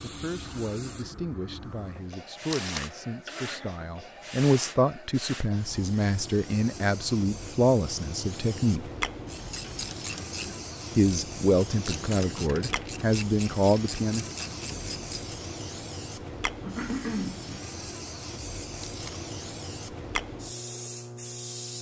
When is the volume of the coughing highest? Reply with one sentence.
The loudest moment of the coughing is at 17 seconds.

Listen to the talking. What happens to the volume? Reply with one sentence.
The volume of the talking goes up.